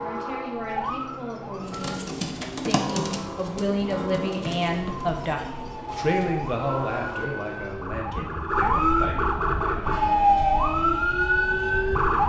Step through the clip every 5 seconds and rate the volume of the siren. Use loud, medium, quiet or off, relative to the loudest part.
quiet, medium, loud.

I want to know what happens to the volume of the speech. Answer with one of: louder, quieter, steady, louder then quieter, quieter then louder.
louder then quieter.